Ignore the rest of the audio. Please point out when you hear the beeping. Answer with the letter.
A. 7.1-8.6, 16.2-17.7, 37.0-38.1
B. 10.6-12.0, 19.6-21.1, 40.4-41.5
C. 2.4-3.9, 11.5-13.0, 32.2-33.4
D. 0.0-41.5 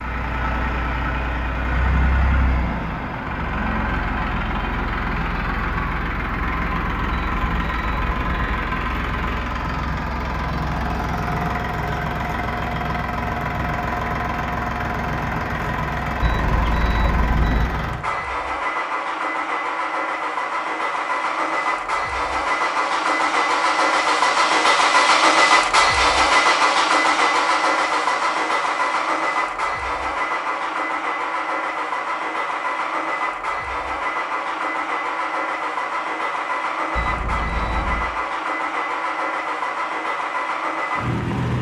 A.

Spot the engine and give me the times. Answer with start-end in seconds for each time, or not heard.
0.0-41.5.